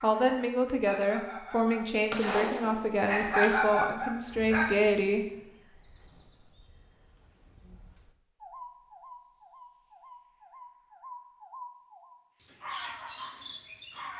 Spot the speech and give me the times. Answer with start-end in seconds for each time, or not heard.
0.0-5.8.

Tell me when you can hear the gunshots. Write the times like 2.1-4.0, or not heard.
2.1-3.6.